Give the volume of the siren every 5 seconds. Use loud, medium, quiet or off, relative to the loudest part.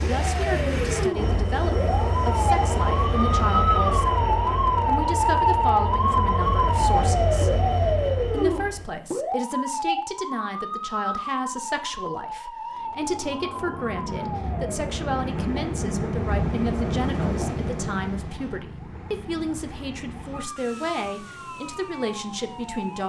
loud, loud, medium, quiet, quiet.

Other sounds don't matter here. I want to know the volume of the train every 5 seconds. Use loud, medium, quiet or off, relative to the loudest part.
loud, loud, medium, loud, off.